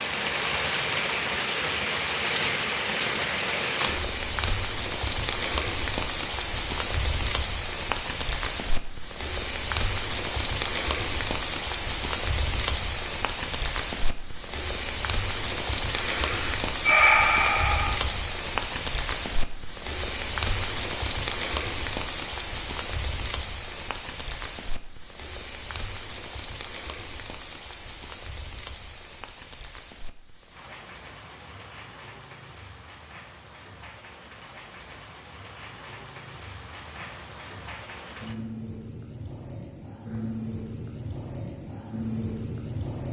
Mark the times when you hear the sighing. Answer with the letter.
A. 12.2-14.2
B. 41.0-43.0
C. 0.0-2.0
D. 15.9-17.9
D.